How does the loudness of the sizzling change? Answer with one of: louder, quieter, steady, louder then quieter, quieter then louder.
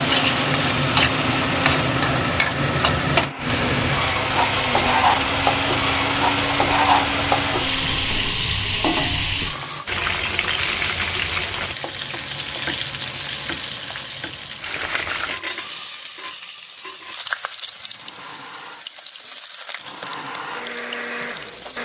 quieter.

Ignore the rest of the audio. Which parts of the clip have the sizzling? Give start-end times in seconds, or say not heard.
0.0-21.8.